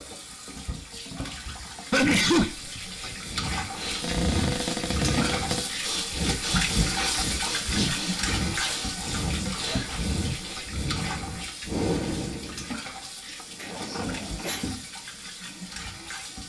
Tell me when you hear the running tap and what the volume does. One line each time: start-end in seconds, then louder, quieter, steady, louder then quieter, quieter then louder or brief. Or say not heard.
0.0-16.4 louder then quieter.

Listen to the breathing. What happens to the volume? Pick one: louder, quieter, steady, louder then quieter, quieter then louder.
steady.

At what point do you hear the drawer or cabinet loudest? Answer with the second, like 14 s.
5 s.